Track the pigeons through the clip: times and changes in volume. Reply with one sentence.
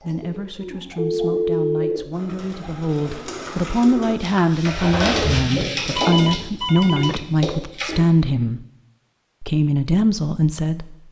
You can hear the pigeons from 0.0 to 8.0 s, getting louder then quieter.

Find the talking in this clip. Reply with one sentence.
The talking can be heard from 0.0 to 8.7 s and from 9.4 to 10.9 s.